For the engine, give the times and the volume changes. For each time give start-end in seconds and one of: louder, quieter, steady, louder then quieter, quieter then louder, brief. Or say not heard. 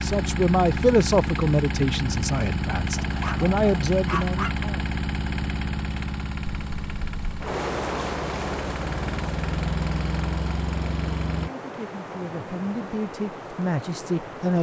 0.0-11.5 quieter then louder.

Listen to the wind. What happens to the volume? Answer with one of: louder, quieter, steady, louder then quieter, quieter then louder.
quieter.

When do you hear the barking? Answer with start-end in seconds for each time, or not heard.
3.0-4.5.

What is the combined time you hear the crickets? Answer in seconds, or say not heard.
not heard.